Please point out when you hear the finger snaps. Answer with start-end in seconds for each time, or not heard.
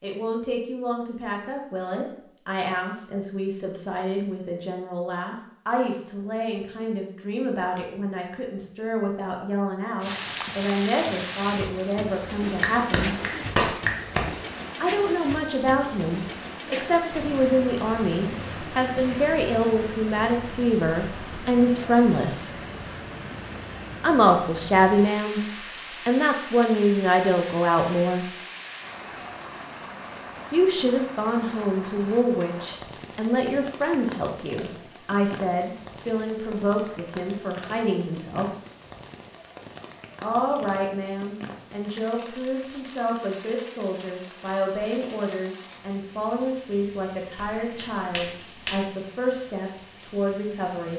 12.4-14.2, 47.4-48.9.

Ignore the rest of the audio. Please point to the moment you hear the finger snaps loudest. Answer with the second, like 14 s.
14 s.